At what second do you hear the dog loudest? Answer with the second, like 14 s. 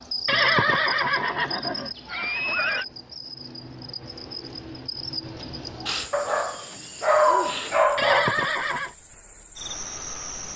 7 s.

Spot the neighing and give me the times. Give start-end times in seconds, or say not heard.
0.2-2.9, 8.0-8.9.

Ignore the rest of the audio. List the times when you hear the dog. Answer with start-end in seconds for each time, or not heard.
6.1-8.3.